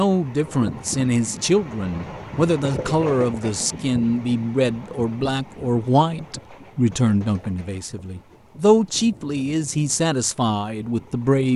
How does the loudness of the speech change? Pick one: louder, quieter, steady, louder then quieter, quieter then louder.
steady.